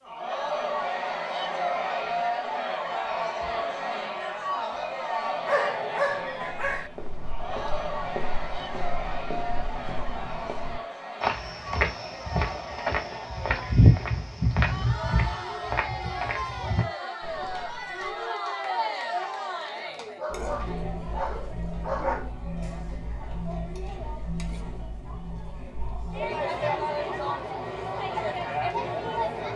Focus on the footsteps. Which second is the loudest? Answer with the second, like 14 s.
14 s.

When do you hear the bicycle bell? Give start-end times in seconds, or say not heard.
not heard.